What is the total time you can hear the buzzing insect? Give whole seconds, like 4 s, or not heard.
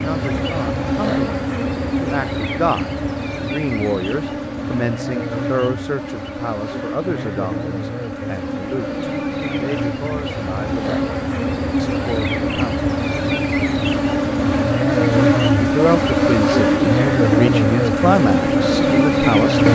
20 s.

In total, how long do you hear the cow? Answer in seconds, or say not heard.
not heard.